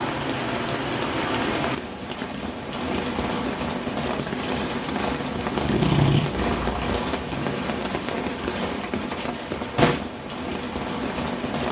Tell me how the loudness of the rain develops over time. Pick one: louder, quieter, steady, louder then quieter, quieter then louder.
steady.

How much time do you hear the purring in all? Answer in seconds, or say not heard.
2 s.